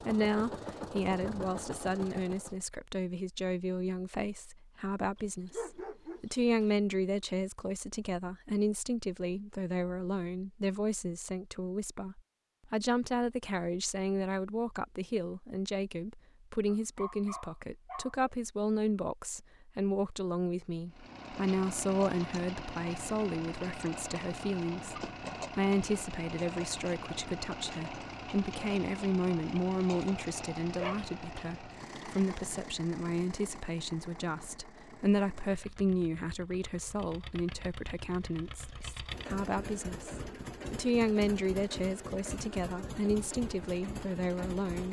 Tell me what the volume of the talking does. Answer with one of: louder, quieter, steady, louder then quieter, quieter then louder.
steady.